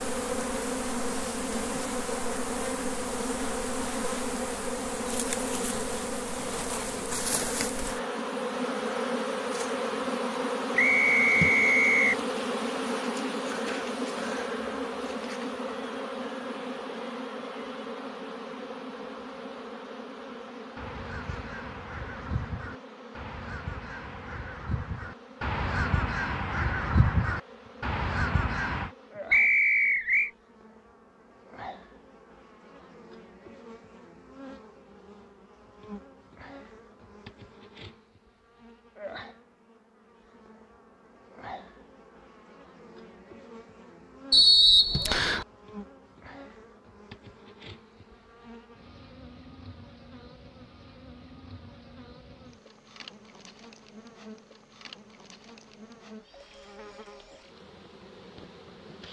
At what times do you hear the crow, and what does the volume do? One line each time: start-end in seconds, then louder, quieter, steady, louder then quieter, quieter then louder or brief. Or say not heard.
20.8-28.9 louder.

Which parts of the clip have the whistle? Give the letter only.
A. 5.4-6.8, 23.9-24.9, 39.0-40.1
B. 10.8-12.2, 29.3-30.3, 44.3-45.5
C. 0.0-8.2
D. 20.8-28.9
B.